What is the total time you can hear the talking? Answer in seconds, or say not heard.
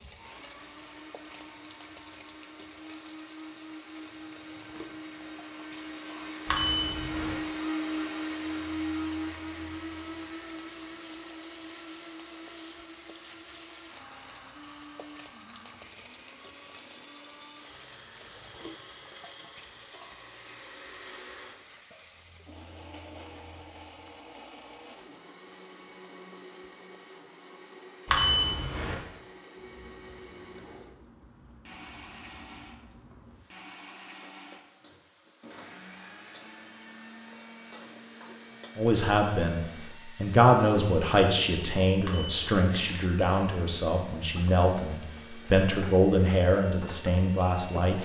9 s.